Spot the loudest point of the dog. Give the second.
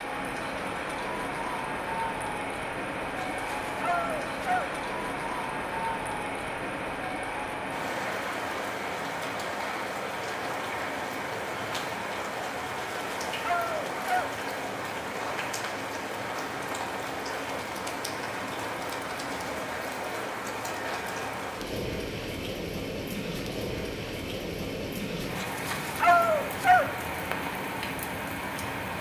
26 s.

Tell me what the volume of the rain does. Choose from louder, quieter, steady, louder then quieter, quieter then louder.
steady.